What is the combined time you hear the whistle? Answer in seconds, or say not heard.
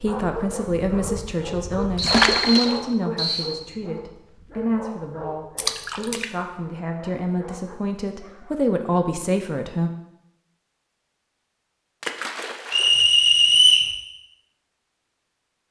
3 s.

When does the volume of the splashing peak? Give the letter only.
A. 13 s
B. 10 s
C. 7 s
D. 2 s
D.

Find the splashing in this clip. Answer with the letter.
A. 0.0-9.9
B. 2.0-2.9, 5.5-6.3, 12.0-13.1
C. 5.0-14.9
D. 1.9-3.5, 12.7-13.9
B.